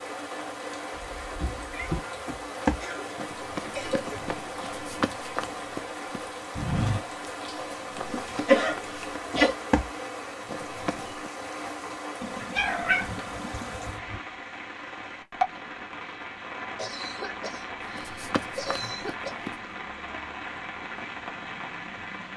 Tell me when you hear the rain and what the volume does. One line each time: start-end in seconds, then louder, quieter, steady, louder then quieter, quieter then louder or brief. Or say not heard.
0.0-22.3 steady.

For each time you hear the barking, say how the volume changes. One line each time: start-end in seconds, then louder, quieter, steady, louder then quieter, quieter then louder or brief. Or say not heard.
not heard.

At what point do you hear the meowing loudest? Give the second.
13 s.